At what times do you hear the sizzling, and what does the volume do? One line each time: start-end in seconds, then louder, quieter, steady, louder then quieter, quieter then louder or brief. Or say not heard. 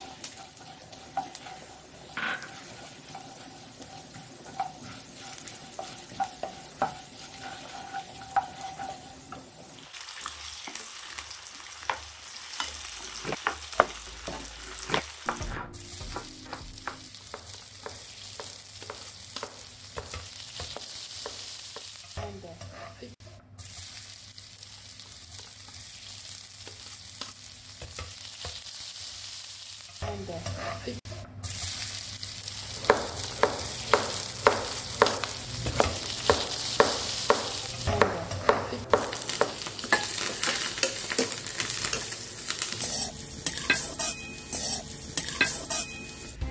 0.0-46.4 quieter then louder.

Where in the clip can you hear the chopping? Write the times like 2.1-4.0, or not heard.
12.9-21.9, 32.8-39.5.